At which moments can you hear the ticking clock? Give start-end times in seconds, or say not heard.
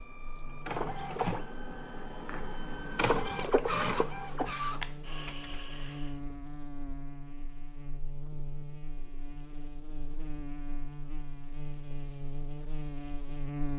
not heard.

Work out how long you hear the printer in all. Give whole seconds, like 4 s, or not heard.
6 s.